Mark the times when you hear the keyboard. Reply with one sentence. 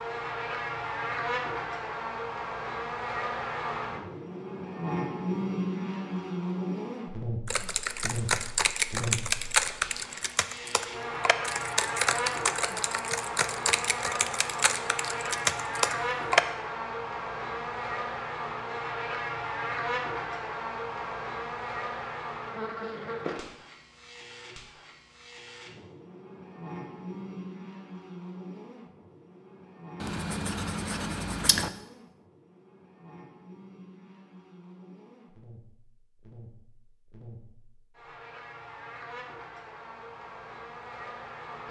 You can hear the keyboard from 7.5 to 16.4 s.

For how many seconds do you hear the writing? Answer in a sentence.
The writing can be heard for 2 seconds in total.